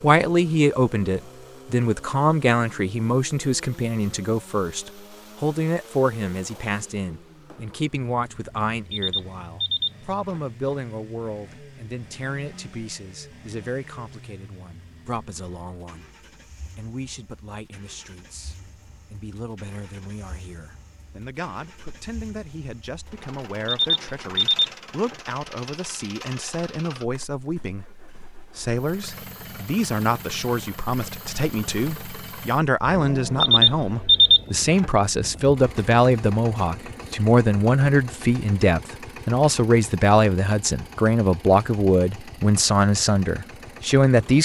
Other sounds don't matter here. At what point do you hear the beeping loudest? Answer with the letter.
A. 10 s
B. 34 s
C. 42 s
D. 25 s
B.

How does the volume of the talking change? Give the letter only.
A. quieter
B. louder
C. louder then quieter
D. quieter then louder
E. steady
D.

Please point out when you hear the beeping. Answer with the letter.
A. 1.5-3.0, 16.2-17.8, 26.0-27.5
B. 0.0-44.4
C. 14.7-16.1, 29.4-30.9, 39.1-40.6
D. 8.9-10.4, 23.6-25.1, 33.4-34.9
D.